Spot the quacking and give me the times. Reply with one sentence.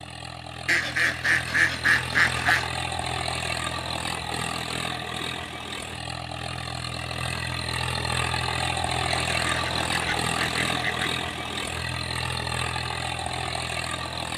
The quacking can be heard from 0.7 to 2.7 s and from 9.1 to 11.1 s.